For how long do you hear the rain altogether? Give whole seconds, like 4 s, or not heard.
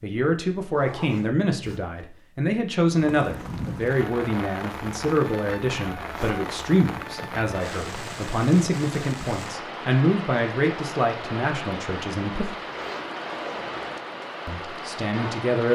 13 s.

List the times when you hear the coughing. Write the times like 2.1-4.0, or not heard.
not heard.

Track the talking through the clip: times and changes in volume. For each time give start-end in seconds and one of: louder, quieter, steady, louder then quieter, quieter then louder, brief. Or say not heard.
0.0-12.6 steady
14.4-15.7 brief.